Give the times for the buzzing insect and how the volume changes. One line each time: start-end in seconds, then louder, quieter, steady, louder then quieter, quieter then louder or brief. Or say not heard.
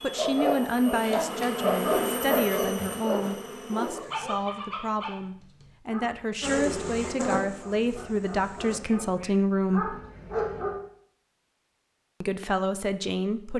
0.0-4.3 louder then quieter
6.4-8.8 brief.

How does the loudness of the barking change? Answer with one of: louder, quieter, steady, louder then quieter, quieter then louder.
quieter then louder.